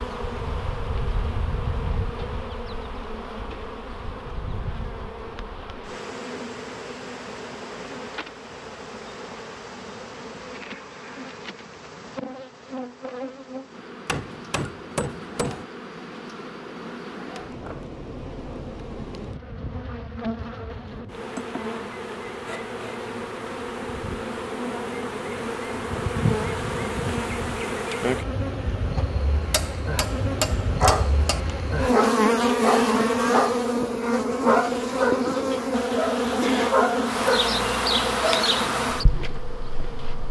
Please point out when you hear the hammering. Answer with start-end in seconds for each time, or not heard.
14.1-15.7, 29.5-31.4.